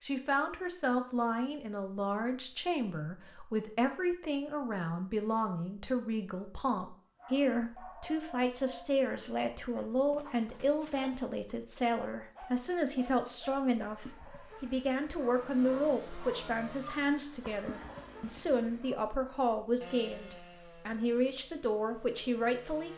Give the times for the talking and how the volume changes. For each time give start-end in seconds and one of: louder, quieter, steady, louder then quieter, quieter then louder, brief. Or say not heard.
0.0-22.9 steady.